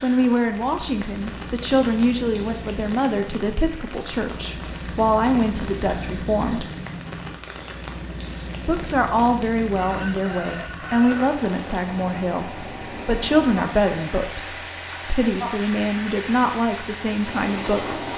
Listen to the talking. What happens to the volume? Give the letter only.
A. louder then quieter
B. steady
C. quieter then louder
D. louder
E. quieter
B.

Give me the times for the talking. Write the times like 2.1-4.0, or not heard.
0.0-6.7, 8.7-18.1.